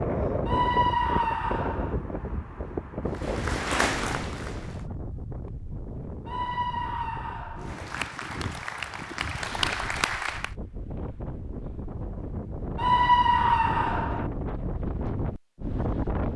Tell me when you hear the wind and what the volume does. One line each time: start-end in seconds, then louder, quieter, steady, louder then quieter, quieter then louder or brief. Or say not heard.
0.0-16.3 quieter then louder.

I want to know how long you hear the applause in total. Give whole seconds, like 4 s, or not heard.
5 s.